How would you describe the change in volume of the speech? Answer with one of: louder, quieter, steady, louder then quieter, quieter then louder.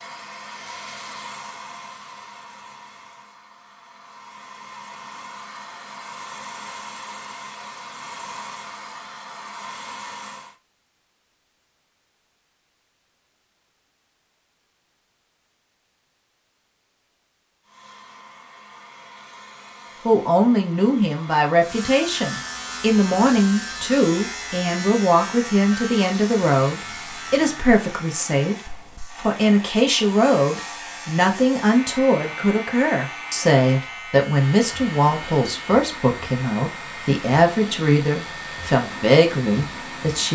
steady.